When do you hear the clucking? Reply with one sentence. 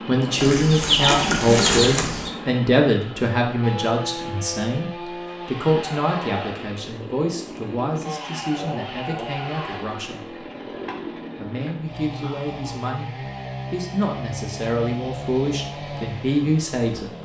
You can hear the clucking from 0.3 to 2.3 s.